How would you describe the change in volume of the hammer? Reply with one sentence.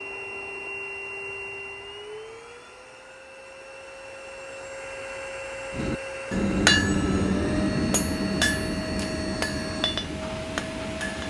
The volume of the hammer goes down.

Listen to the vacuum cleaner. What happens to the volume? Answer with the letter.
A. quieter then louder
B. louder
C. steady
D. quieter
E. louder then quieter
A.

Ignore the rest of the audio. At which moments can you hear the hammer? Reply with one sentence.
The hammer can be heard from 5.7 to 11.2 s.